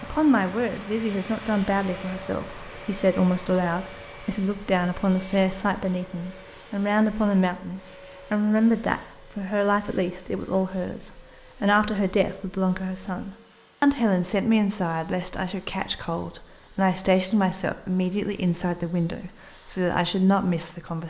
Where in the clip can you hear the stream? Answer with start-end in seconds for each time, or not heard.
not heard.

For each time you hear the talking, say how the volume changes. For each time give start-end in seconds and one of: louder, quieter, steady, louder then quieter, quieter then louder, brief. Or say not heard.
0.0-21.0 steady.